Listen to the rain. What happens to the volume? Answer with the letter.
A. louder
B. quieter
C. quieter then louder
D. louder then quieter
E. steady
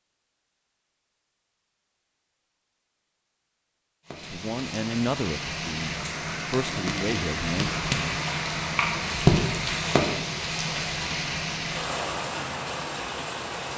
D.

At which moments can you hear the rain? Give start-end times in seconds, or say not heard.
4.0-13.7.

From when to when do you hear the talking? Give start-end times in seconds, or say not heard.
4.2-7.7.